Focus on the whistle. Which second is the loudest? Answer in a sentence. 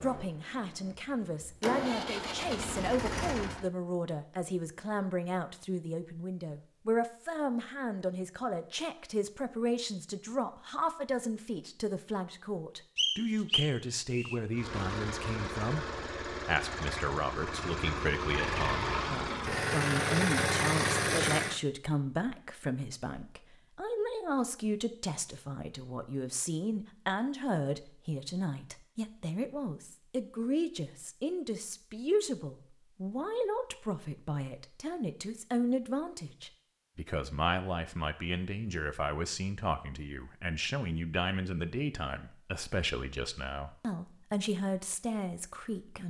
The volume of the whistle peaks at 13 seconds.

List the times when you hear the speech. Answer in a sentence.
You can hear the speech from 0.0 to 46.0 s.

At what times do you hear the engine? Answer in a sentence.
The engine can be heard from 0.0 to 3.7 s and from 14.6 to 21.6 s.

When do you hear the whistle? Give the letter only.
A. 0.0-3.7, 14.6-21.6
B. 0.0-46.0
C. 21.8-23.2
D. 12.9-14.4
D.